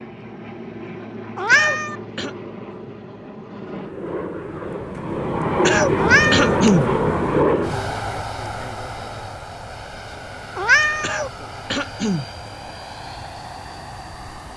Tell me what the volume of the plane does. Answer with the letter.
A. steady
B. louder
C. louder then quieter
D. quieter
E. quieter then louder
C.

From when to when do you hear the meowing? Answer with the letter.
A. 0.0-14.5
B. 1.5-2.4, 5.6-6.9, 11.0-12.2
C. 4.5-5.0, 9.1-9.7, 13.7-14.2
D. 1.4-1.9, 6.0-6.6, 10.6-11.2
D.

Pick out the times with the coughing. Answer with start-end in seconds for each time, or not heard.
1.5-2.4, 5.6-6.9, 11.0-12.2.